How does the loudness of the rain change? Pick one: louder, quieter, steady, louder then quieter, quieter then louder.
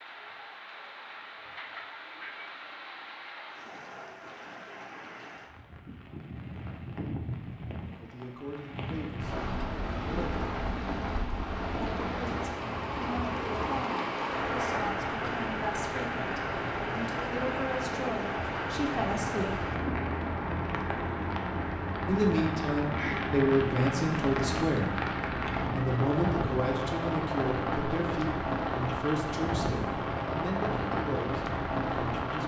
louder.